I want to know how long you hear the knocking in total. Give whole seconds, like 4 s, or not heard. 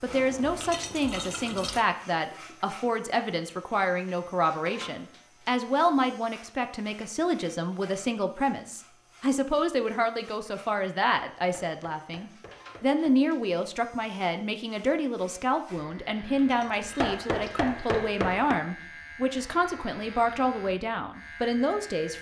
4 s.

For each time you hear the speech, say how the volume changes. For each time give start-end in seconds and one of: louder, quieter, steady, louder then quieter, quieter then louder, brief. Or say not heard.
0.0-22.1 steady.